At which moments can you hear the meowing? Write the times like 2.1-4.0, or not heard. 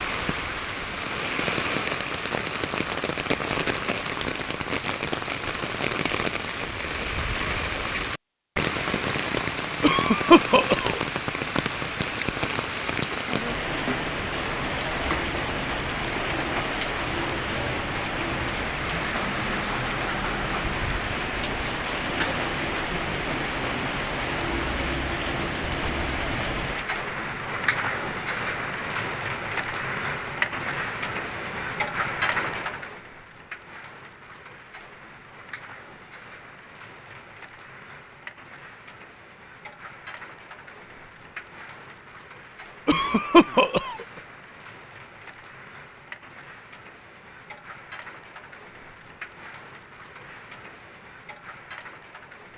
not heard.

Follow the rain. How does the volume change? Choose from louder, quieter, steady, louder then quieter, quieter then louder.
quieter.